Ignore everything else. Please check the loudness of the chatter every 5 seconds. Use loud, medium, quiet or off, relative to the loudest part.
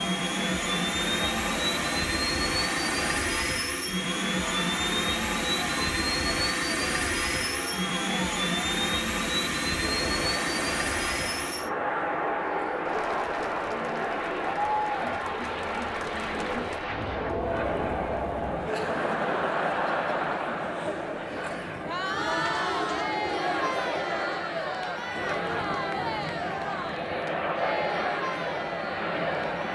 medium, medium, loud, loud, loud, loud.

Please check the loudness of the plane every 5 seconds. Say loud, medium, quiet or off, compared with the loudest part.
loud, loud, loud, medium, medium, loud.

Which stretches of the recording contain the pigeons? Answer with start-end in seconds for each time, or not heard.
22.1-24.4.